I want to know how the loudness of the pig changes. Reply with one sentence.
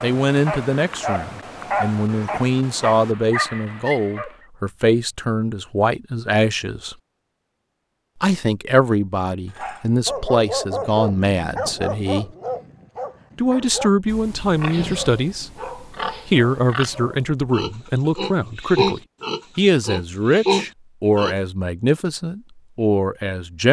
The loudness of the pig goes up.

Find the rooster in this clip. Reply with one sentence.
You can't hear the rooster here.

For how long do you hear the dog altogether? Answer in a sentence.
The dog can be heard for 12 seconds in total.